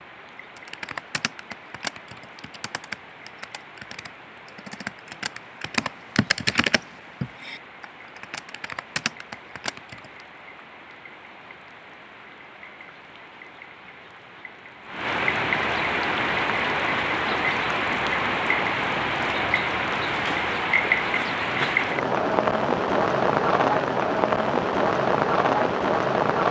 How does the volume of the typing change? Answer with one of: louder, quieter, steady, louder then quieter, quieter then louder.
louder then quieter.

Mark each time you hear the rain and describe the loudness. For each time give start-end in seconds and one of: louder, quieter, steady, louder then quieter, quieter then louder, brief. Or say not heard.
0.0-26.4 louder.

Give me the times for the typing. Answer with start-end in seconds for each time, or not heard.
0.6-10.2.